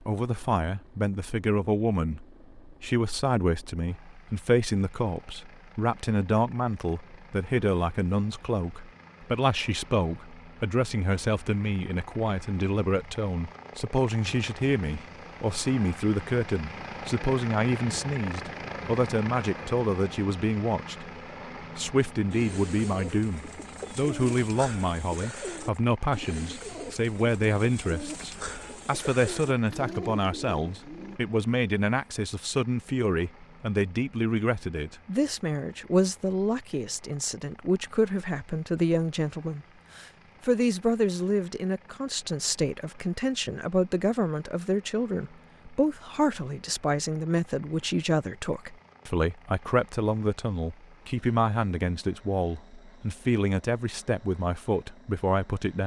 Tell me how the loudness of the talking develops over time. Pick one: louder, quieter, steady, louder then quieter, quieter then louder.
steady.